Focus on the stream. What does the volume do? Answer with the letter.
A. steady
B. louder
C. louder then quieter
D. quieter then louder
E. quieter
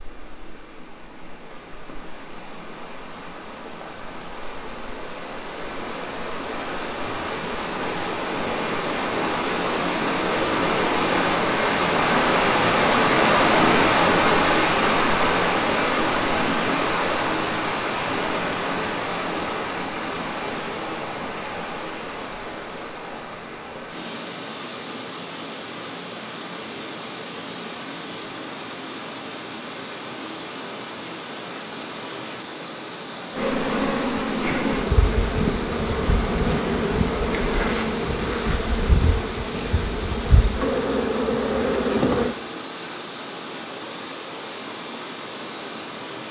C.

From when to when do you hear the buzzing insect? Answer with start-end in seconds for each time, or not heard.
33.4-42.4.